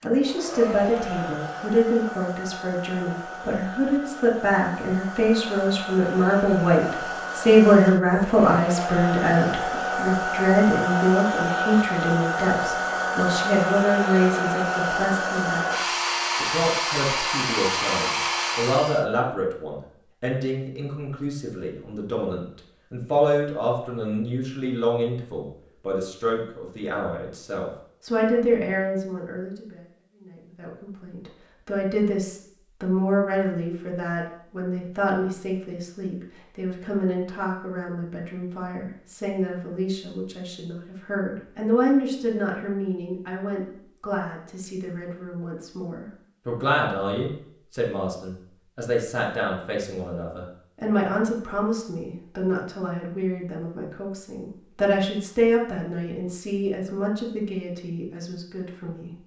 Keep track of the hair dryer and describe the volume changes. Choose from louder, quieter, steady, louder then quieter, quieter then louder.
louder.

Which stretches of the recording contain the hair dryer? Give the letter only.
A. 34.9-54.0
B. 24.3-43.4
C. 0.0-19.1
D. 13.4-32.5
C.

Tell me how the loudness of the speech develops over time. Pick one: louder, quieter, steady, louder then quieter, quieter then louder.
quieter.